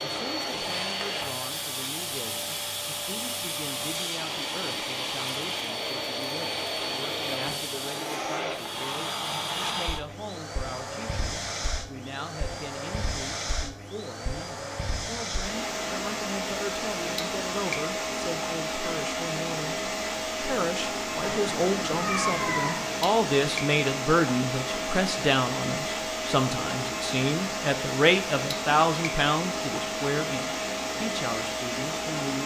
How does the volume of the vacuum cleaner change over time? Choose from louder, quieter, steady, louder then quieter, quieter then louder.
steady.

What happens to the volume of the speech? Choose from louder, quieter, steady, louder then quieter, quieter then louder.
louder.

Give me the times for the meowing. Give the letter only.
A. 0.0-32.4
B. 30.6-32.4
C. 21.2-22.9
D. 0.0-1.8
C.